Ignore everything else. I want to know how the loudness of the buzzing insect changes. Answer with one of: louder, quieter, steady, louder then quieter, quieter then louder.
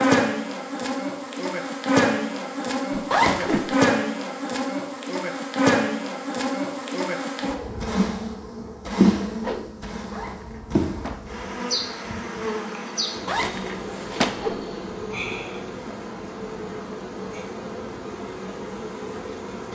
quieter.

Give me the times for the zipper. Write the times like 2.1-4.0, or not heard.
3.1-3.6, 10.1-11.2, 13.2-14.3.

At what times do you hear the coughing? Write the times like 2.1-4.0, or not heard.
not heard.